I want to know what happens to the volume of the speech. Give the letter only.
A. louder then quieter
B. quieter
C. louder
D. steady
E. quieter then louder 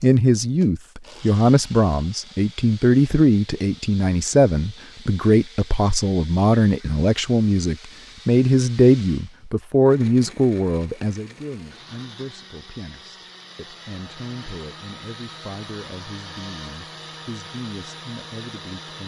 B.